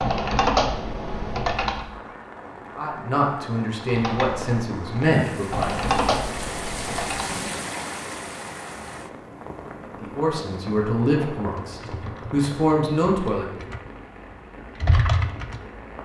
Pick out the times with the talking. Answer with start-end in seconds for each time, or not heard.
2.8-5.8, 10.0-13.7.